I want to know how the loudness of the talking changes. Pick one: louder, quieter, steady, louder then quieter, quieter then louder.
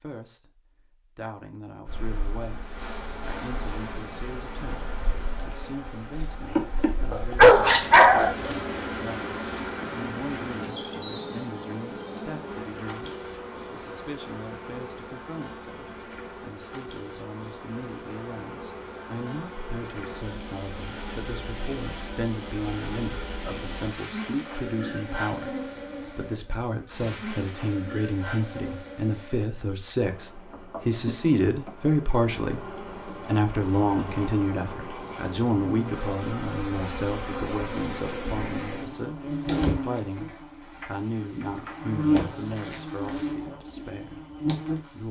louder then quieter.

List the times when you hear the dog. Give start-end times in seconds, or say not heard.
7.1-8.6.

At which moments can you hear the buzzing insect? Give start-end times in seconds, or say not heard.
1.9-45.0.